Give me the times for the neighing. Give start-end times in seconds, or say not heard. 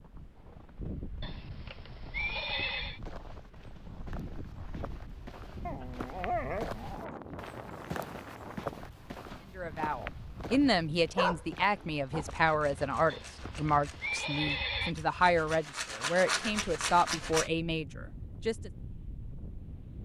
1.2-3.0, 13.1-14.9.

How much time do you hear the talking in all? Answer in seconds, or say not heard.
9 s.